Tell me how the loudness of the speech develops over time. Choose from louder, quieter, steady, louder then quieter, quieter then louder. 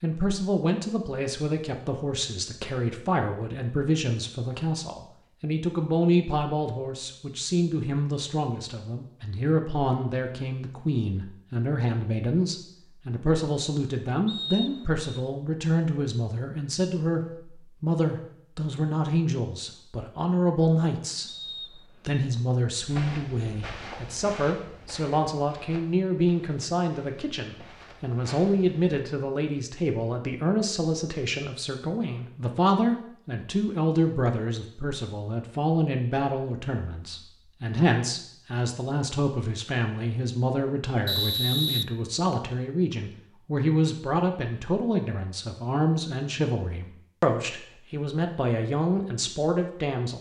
steady.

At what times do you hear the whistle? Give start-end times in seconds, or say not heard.
14.2-15.1, 21.2-22.2, 41.0-42.5.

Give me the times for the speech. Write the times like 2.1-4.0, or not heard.
0.0-50.1.